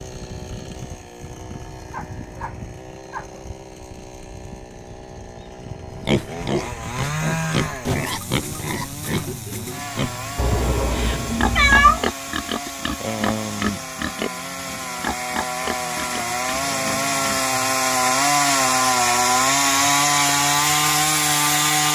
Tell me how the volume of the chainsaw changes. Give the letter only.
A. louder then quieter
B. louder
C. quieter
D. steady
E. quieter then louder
B.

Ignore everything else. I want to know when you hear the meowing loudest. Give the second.
12 s.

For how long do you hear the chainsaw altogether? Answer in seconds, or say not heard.
22 s.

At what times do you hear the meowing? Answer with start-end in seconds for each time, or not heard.
10.3-12.0.